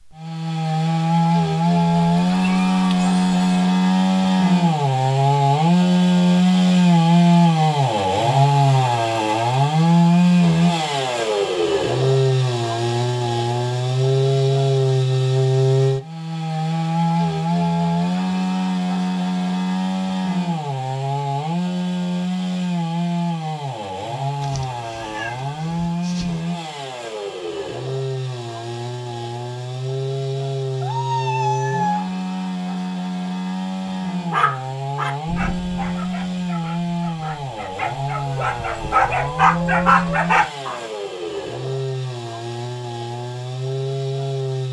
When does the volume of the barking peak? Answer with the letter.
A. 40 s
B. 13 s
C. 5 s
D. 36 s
A.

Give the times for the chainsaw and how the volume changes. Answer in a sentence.
You can hear the chainsaw from 0.0 to 44.6 s, getting quieter.